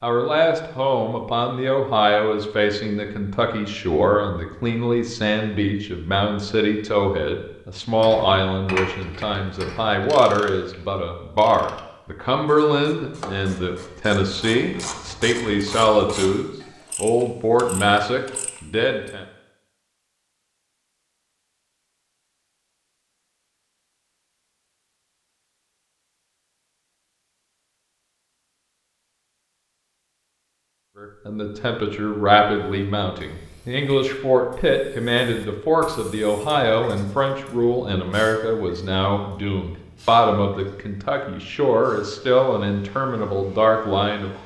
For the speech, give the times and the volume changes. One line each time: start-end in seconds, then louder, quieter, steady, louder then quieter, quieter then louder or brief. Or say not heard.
0.0-19.2 steady
31.0-44.4 steady.